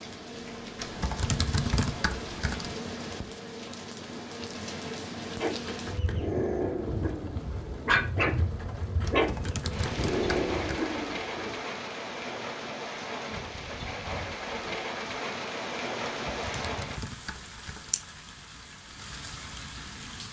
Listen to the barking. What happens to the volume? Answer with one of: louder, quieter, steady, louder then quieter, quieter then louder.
steady.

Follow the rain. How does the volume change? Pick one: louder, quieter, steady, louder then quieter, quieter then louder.
steady.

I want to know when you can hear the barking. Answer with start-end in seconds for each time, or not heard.
5.4-11.6.